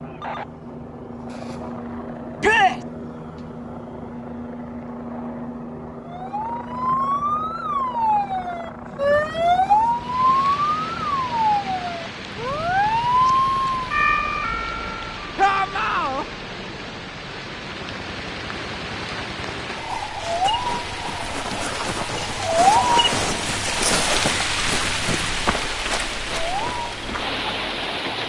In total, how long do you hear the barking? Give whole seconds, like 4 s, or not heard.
not heard.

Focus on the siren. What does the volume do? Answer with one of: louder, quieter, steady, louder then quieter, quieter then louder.
steady.